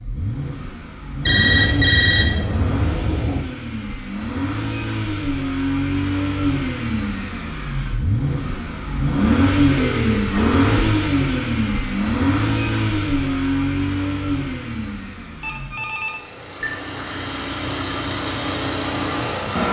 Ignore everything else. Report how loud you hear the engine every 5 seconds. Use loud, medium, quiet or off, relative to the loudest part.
medium, loud, loud, medium.